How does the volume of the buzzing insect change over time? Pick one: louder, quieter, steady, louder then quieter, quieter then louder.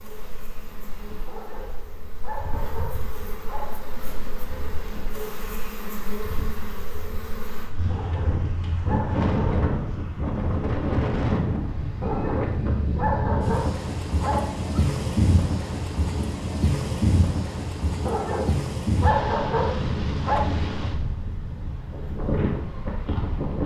louder.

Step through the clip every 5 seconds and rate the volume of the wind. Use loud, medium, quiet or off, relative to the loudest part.
quiet, loud, loud, loud, loud.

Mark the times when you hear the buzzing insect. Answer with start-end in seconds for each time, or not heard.
0.0-7.7.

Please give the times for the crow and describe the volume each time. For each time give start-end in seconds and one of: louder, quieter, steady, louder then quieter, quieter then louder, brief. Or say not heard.
not heard.